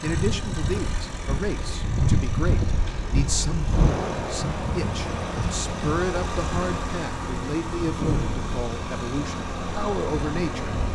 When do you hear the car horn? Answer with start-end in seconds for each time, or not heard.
not heard.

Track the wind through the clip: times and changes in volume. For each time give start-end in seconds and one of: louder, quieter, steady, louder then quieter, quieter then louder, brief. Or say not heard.
0.0-10.9 quieter.